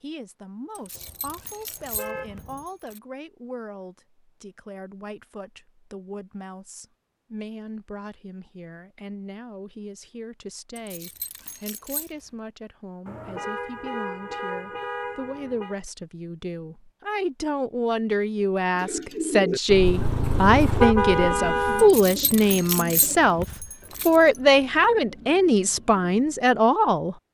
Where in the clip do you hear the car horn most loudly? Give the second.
21 s.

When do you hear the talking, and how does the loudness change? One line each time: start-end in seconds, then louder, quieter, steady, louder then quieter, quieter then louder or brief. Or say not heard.
0.0-27.1 louder.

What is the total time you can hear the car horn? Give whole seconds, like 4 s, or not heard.
7 s.